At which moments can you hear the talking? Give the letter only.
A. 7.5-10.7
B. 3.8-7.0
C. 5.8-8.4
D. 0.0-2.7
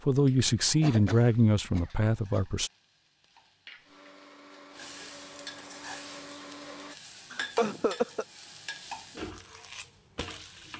D.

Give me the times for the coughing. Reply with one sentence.
You can hear the coughing from 0.8 to 2.4 s and from 7.3 to 8.2 s.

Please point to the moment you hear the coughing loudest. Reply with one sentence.
The loudest moment of the coughing is at 8 seconds.